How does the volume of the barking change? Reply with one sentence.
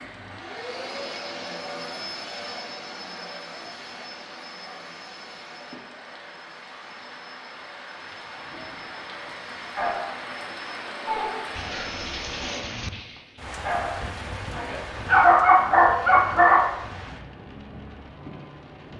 The volume of the barking goes up.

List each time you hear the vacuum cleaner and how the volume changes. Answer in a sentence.
The vacuum cleaner can be heard from 0.0 to 12.7 s, getting quieter then louder.